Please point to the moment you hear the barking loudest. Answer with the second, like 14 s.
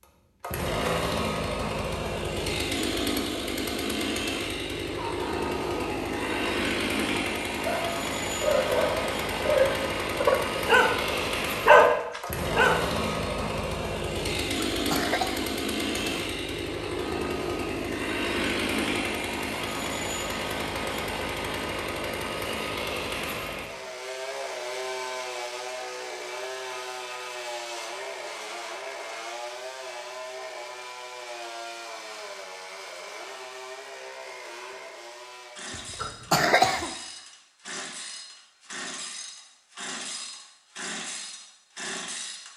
12 s.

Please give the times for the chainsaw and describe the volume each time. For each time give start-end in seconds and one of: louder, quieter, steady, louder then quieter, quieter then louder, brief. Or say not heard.
0.0-42.5 quieter.